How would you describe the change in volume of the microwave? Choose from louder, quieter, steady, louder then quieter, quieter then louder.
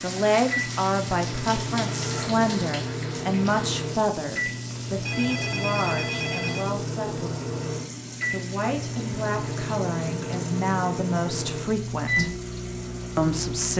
steady.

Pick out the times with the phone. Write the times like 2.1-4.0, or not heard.
4.7-6.8.